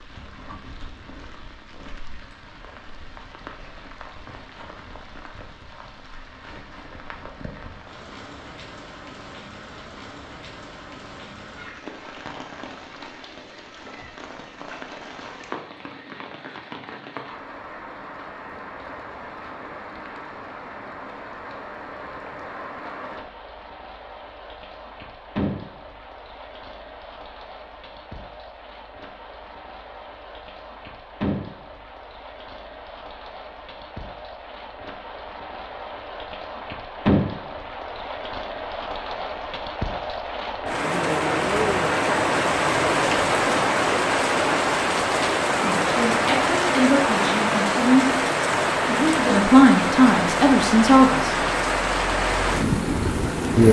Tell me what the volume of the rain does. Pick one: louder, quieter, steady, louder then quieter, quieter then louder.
louder.